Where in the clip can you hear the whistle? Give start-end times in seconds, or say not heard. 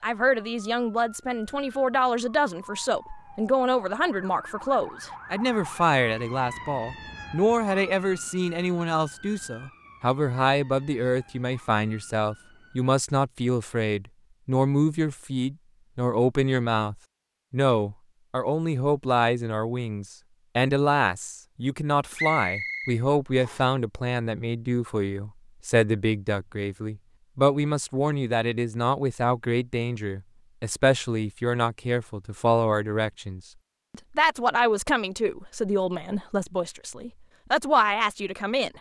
22.1-23.6.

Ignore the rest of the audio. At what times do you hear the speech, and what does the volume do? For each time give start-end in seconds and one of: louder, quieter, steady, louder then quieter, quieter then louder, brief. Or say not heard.
0.0-38.7 steady.